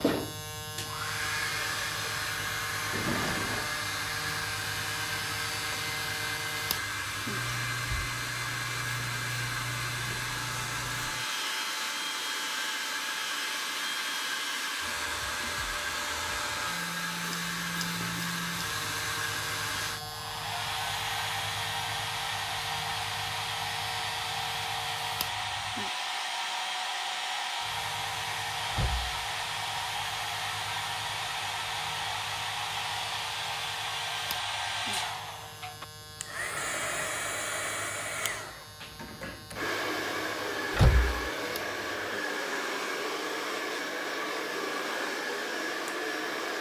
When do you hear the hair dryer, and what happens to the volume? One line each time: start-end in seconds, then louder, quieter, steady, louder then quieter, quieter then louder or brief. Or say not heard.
0.0-46.5 steady.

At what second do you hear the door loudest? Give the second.
41 s.